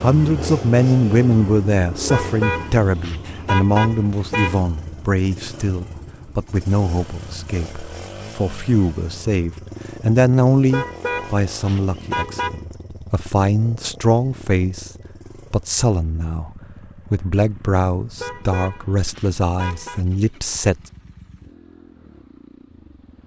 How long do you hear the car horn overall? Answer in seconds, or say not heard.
6 s.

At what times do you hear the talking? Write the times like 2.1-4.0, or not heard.
0.0-14.9, 15.5-20.8.